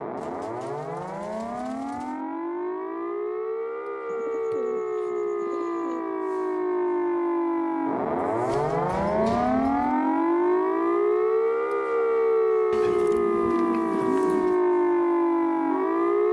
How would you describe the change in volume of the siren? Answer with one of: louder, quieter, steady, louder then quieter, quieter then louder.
louder.